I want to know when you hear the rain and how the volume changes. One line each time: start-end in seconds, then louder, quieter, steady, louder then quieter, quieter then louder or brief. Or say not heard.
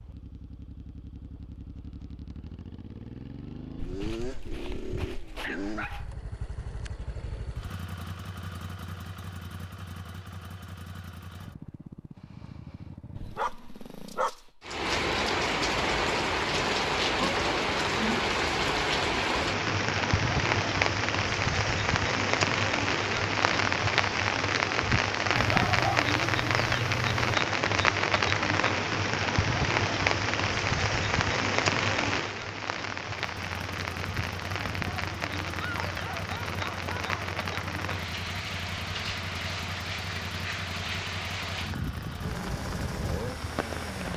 14.6-44.1 quieter.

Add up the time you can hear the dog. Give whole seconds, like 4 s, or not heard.
8 s.